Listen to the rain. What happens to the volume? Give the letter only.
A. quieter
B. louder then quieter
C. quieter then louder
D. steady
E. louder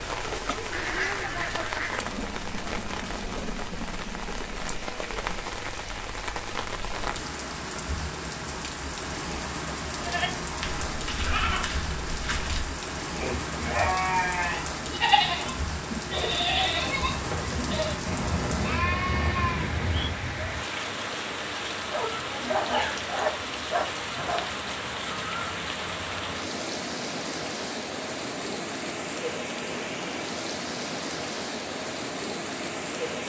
D.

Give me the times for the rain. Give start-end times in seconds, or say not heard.
0.0-33.2.